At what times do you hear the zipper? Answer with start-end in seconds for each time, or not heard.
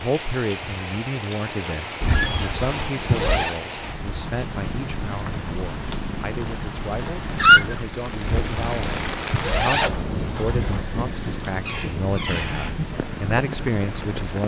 2.0-3.5, 8.2-10.8.